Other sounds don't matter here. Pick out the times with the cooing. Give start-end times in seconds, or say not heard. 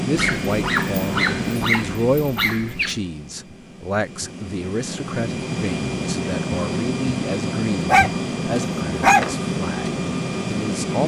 not heard.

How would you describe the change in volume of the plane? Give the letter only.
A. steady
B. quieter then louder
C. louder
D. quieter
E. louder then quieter
B.